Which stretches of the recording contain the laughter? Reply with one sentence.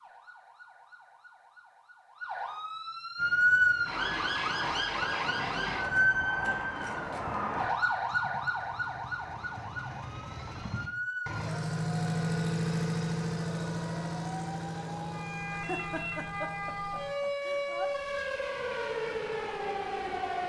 You can hear the laughter from 15.5 to 17.9 s.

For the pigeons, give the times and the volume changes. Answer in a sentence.
You can't hear the pigeons here.